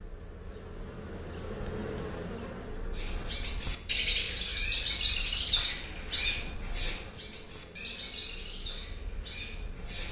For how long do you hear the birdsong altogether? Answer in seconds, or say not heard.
7 s.